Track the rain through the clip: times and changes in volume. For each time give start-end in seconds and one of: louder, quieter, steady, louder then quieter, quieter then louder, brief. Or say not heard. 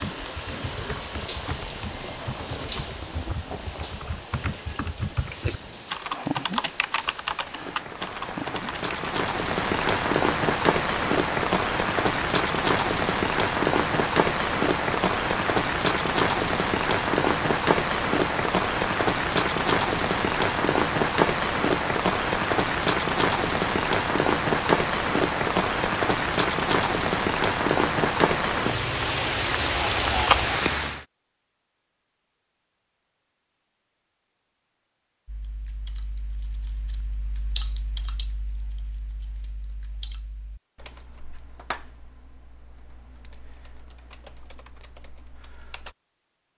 0.0-31.1 louder.